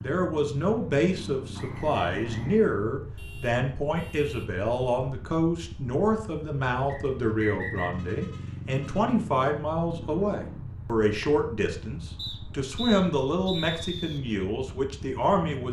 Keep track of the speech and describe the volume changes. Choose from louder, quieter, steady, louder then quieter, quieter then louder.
steady.